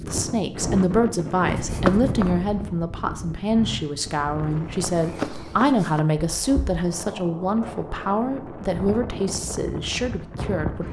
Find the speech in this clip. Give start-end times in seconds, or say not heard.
0.0-10.8.